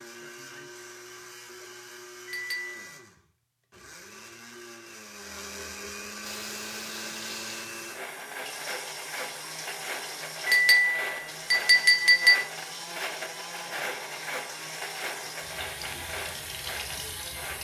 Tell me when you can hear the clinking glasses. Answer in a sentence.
The clinking glasses can be heard from 2.2 to 2.8 s and from 10.4 to 12.3 s.